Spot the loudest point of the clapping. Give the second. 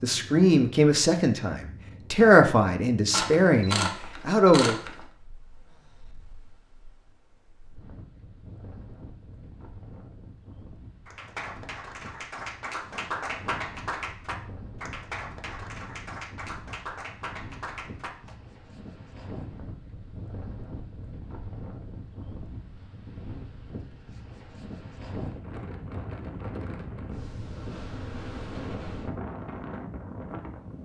13 s.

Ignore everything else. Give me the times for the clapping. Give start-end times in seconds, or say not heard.
11.1-18.4.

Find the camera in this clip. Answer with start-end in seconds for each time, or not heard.
3.1-5.0.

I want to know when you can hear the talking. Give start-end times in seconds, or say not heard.
0.0-4.8.